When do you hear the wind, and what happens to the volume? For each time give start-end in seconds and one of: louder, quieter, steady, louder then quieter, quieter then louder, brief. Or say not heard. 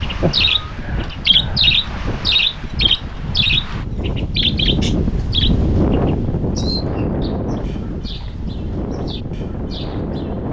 0.0-10.4 louder then quieter.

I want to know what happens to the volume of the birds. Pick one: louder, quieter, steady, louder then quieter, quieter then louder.
quieter.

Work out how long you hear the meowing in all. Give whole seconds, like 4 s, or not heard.
2 s.